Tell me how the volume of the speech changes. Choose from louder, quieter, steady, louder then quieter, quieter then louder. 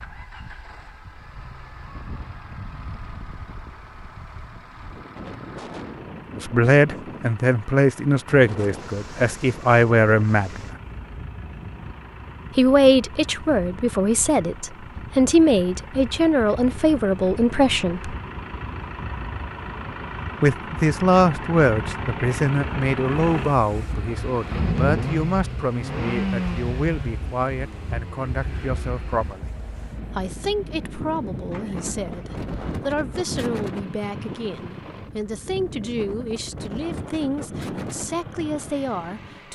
quieter.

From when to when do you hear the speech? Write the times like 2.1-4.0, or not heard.
6.3-10.7, 12.6-18.1, 20.4-39.5.